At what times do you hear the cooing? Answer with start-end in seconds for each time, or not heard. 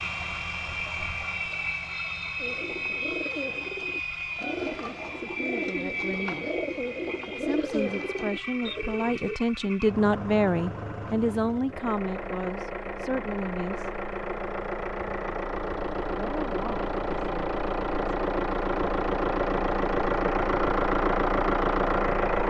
2.4-9.4.